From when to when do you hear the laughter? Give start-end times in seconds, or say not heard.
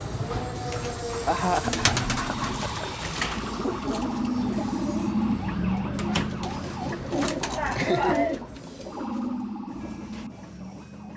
1.2-3.0, 7.5-8.3.